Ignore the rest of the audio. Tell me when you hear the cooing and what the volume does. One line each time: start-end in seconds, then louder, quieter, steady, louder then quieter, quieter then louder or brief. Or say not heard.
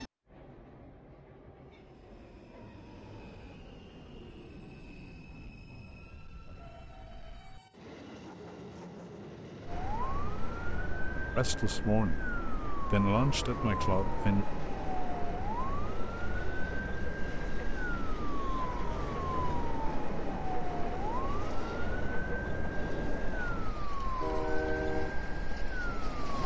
not heard.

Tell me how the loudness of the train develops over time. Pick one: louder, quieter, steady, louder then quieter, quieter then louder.
louder.